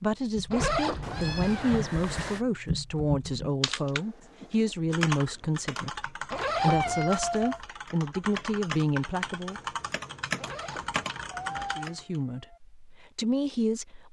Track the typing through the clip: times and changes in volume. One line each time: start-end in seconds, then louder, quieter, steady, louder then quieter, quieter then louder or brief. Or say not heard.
0.3-12.0 steady.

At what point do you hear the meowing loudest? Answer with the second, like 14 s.
7 s.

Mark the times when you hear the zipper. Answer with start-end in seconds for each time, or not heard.
0.5-1.9, 6.3-7.0, 10.3-11.8.